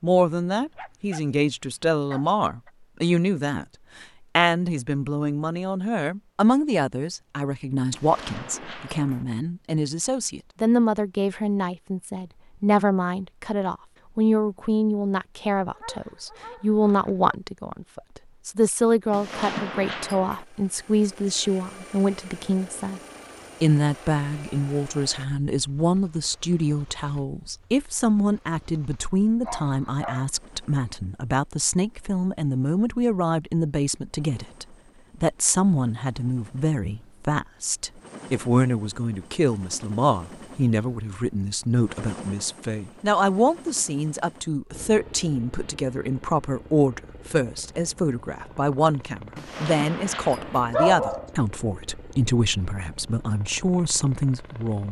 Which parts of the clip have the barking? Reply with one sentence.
The barking can be heard from 0.5 to 2.7 s, from 15.6 to 17.4 s, from 29.4 to 30.3 s and from 50.7 to 51.3 s.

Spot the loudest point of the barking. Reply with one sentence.
The volume of the barking peaks at 51 seconds.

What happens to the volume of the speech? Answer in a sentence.
The loudness of the speech stays about the same.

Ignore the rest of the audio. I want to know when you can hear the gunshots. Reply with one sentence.
The gunshots can be heard from 7.9 to 9.2 s, from 19.1 to 20.4 s and from 49.4 to 50.7 s.